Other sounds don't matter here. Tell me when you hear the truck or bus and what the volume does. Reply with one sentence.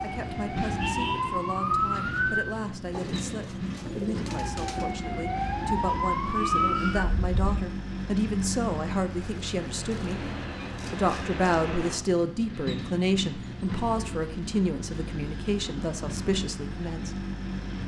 You can hear the truck or bus from 0.0 to 17.8 s, at a steady volume.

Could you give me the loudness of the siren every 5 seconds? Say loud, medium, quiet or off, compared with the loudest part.
loud, loud, off, off.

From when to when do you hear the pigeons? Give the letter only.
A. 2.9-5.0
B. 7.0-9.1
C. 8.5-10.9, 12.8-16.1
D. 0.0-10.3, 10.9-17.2
A.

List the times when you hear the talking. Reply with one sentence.
You can hear the talking from 0.0 to 10.3 s and from 10.9 to 17.2 s.